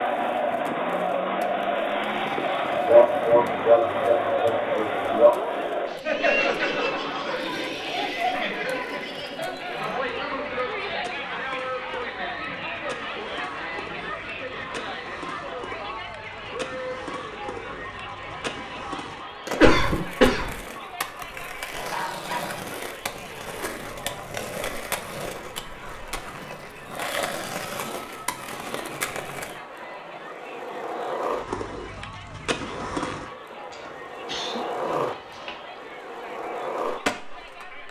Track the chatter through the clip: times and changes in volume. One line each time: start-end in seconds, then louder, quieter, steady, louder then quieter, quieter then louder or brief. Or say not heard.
0.0-37.8 quieter.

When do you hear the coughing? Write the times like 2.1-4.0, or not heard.
2.9-5.3, 19.5-20.6, 33.7-35.5.